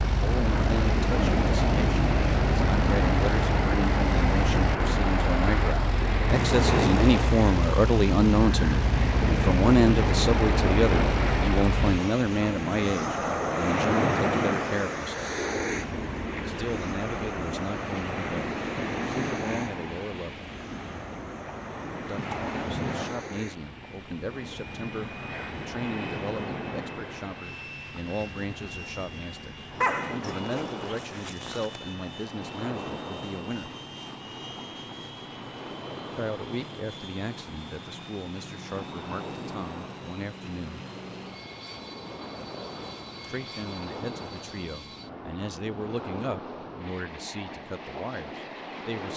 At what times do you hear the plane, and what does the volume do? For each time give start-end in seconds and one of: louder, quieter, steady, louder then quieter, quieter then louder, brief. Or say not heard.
0.0-49.1 quieter.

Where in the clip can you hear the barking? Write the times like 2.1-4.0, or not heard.
29.8-31.8.